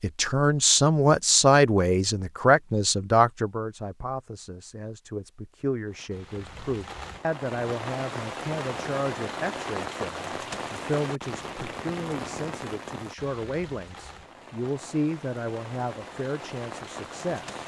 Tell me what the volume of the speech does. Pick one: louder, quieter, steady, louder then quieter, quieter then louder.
quieter.